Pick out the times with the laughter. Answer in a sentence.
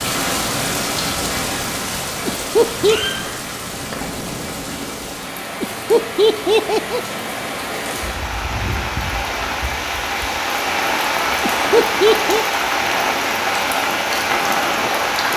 The laughter can be heard from 2.2 to 3.0 s, from 5.6 to 7.0 s and from 11.4 to 12.4 s.